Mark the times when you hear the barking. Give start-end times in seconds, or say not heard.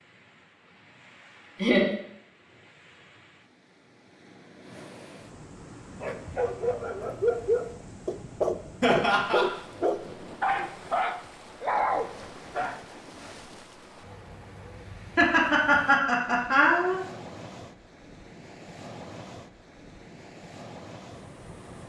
6.0-12.8.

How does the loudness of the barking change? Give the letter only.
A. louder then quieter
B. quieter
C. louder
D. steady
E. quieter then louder
D.